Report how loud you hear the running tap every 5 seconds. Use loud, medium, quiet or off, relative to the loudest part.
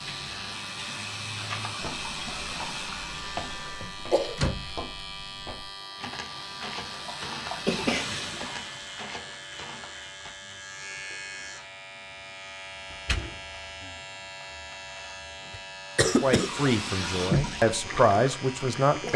medium, medium, off, loud.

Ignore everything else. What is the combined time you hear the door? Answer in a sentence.
You can hear the door for 2 seconds altogether.